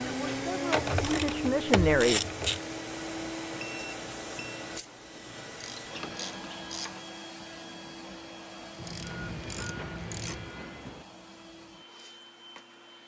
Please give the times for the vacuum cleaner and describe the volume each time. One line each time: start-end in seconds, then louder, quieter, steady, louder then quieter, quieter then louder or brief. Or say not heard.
0.0-13.0 quieter.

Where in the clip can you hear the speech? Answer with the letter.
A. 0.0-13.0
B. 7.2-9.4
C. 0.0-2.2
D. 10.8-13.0
C.